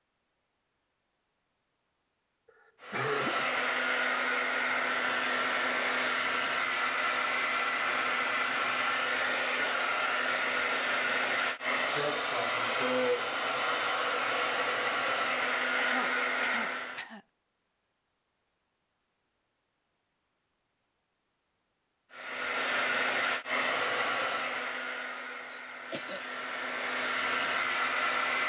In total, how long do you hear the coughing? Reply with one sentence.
The coughing can be heard for 3 seconds in total.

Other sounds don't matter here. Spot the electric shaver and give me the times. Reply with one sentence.
The electric shaver can't be heard in this clip.